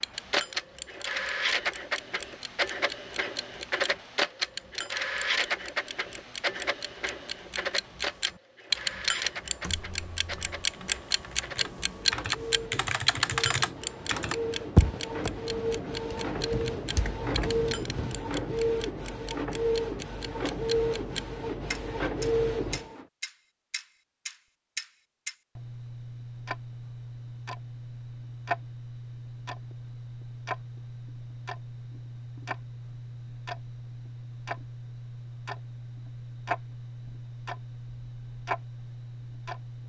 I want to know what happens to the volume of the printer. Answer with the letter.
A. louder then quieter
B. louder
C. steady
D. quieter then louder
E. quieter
D.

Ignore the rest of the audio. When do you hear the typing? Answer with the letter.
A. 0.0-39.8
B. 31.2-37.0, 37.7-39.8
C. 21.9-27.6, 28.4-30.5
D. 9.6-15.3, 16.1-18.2
D.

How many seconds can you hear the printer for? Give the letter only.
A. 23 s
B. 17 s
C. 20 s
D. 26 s
A.